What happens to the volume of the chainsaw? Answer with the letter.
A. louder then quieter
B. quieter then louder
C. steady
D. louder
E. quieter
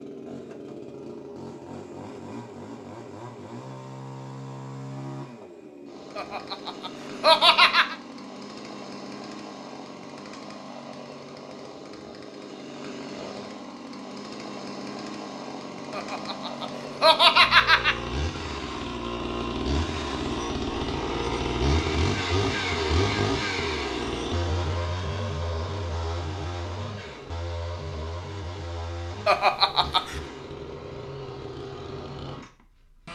A.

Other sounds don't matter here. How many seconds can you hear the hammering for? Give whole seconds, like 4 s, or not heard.
not heard.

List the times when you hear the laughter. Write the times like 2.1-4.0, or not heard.
6.2-8.0, 15.9-17.9, 29.2-30.2.